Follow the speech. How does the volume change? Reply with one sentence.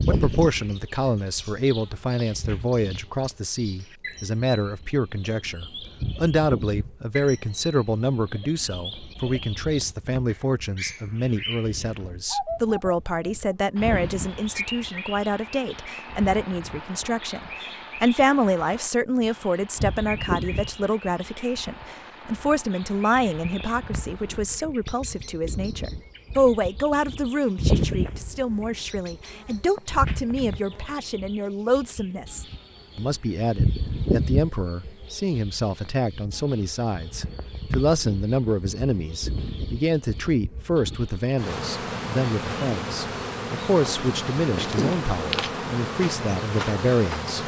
The loudness of the speech stays about the same.